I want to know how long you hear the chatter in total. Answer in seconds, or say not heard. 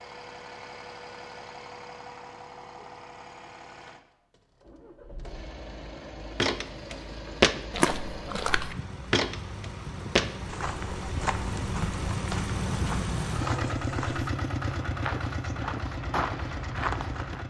not heard.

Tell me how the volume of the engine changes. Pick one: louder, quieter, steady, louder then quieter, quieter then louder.
louder.